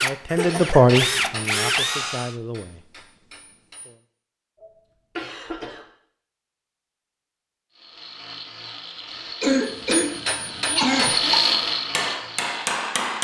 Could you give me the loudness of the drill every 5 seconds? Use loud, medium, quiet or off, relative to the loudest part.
loud, quiet, loud.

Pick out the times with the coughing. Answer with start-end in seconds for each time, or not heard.
0.2-0.8, 4.6-5.8, 9.4-11.3.